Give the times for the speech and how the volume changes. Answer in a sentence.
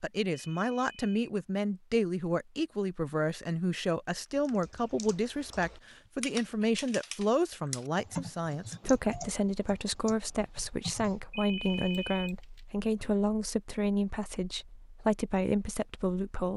The speech can be heard from 0.0 to 16.5 s, at a steady volume.